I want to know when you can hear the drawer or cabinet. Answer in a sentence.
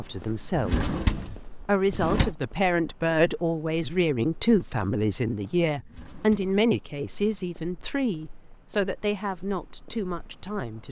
You can hear the drawer or cabinet from 0.5 to 2.4 s and from 5.8 to 6.5 s.